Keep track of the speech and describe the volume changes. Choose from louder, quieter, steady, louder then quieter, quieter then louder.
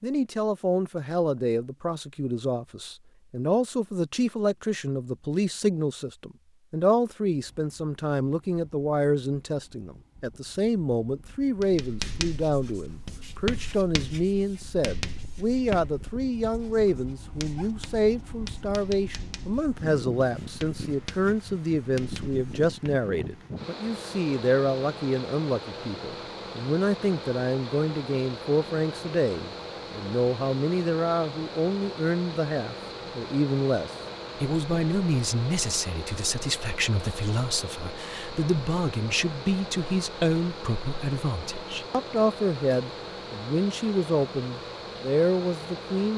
steady.